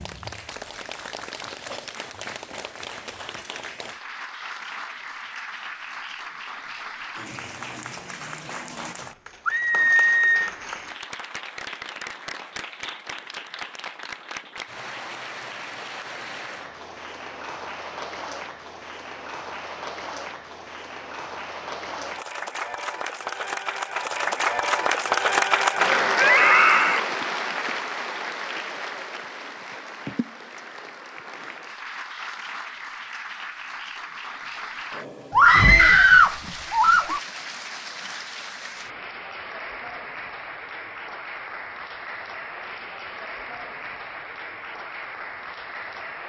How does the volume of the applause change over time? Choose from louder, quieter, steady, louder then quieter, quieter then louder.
louder then quieter.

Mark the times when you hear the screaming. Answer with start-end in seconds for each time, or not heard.
9.4-10.4, 26.1-27.0, 35.3-37.2.